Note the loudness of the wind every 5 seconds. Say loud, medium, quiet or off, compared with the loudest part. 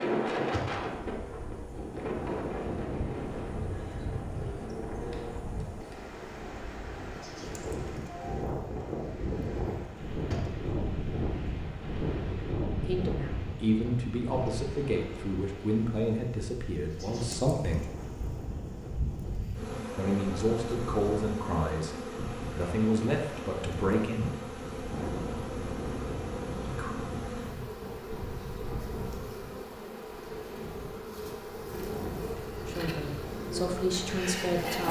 loud, loud, loud, medium, medium, medium, medium.